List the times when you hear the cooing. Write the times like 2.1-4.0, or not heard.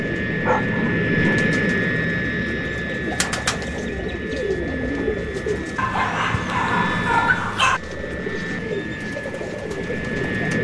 0.0-5.8, 7.6-10.6.